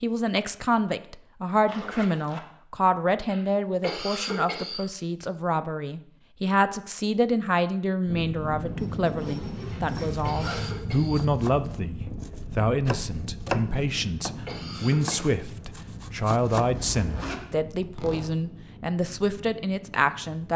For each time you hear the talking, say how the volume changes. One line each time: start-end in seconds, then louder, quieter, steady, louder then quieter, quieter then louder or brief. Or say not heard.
0.0-20.5 steady.